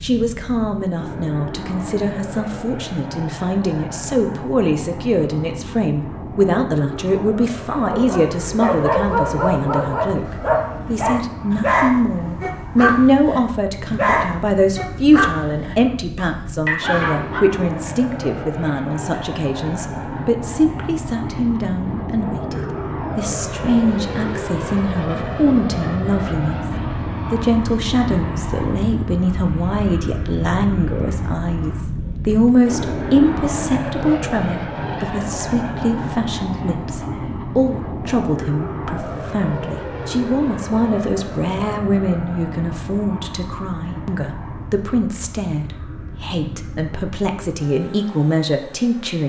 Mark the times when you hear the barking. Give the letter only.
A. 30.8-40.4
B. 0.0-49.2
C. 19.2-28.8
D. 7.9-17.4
D.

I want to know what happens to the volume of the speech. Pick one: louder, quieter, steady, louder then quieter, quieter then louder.
steady.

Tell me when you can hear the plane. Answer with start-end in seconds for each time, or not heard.
0.0-49.2.